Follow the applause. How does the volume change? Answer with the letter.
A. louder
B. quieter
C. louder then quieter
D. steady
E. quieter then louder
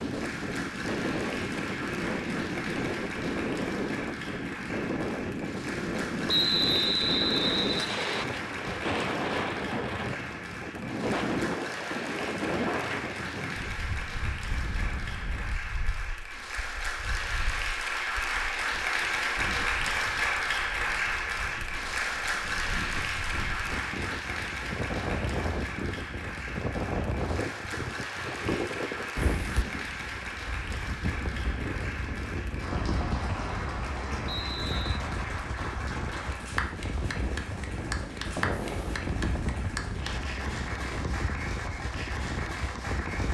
C.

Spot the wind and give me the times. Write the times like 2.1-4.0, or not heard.
0.0-43.2.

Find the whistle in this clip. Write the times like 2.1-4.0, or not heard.
6.2-8.2, 34.2-35.0.